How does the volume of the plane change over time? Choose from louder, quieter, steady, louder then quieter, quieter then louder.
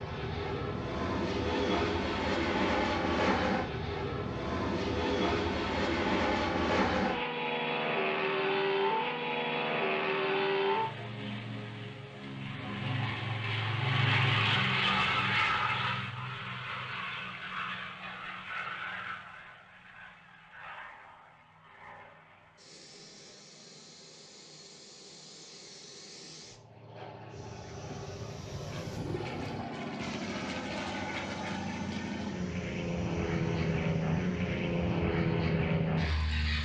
quieter then louder.